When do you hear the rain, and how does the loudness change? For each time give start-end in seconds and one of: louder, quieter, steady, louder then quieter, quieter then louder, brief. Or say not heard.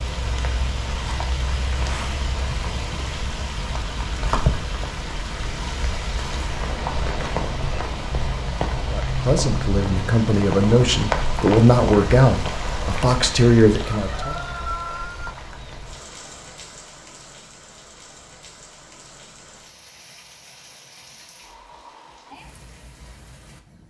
0.0-23.8 quieter.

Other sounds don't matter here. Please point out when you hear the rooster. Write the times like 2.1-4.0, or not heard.
13.9-15.3.